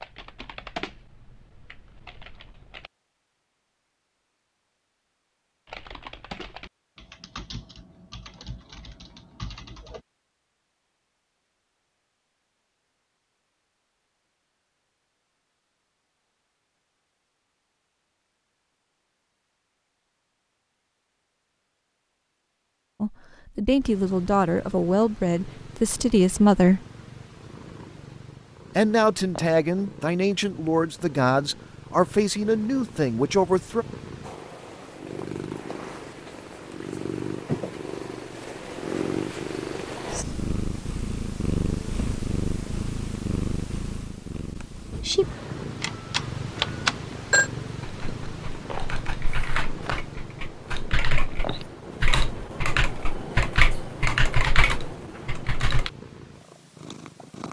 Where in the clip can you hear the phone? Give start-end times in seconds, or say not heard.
45.8-47.5.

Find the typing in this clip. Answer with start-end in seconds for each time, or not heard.
0.0-2.9, 5.7-10.0, 47.8-55.9.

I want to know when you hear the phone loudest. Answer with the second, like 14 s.
47 s.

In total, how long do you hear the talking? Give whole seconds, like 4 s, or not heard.
9 s.